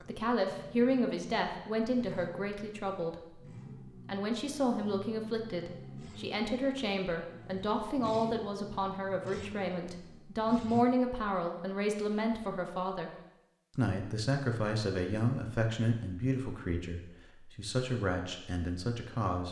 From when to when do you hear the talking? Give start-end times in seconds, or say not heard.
0.1-3.4, 4.0-13.1, 13.8-19.4.